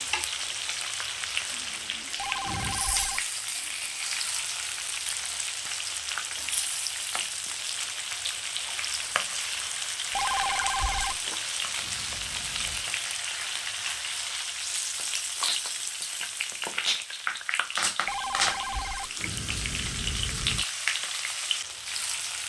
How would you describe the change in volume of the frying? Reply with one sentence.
The loudness of the frying stays about the same.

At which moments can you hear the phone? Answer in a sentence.
The phone can be heard from 2.1 to 3.2 s, from 10.2 to 11.3 s and from 18.1 to 19.3 s.